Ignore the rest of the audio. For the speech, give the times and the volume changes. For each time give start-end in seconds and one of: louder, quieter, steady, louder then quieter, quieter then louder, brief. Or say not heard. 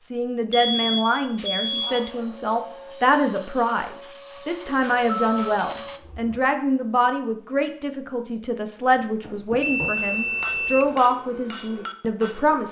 0.0-12.6 steady.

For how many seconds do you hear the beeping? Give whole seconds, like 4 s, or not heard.
5 s.